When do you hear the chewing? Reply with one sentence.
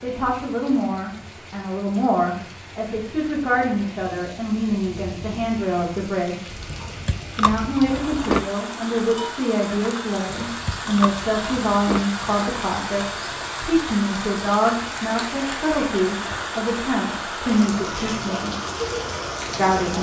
The chewing can be heard from 6.7 to 8.4 s and from 10.4 to 12.1 s.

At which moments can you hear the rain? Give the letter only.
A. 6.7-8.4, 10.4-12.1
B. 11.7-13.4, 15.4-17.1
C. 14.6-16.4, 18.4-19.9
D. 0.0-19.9
D.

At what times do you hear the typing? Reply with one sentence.
You can't hear the typing here.